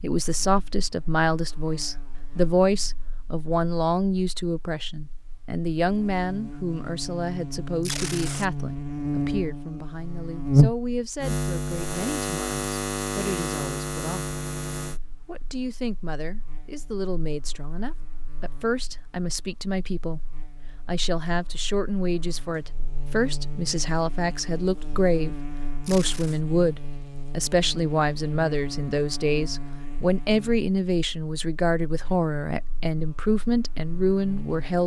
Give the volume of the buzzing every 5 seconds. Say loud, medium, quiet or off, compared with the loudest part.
quiet, medium, loud, quiet, quiet, quiet, quiet.